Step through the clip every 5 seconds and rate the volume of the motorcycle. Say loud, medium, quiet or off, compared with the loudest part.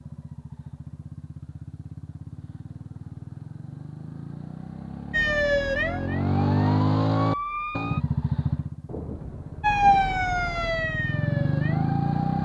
quiet, loud, loud.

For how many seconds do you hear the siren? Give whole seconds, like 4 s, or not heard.
6 s.